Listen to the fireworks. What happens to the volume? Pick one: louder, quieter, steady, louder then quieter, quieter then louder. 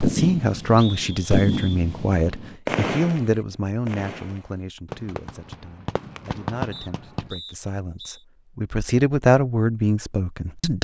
quieter then louder.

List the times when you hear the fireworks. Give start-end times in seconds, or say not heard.
0.0-7.3.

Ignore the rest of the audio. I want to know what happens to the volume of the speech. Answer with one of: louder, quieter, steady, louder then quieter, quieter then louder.
quieter then louder.